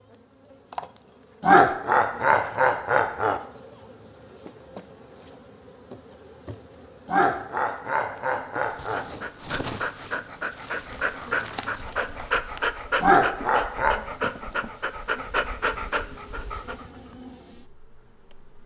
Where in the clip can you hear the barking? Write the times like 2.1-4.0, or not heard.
8.7-16.9.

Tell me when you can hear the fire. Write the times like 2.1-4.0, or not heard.
not heard.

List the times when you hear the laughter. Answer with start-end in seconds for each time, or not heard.
1.4-3.4, 7.0-9.1, 13.0-14.0.